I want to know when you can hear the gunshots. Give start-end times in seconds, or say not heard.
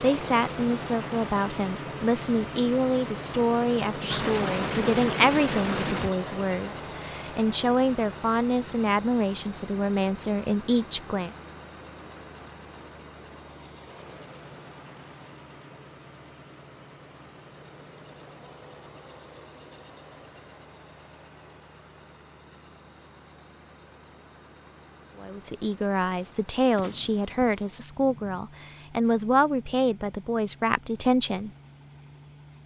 4.1-6.1, 26.8-28.4.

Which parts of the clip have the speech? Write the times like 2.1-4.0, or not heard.
0.0-11.3, 25.1-31.5.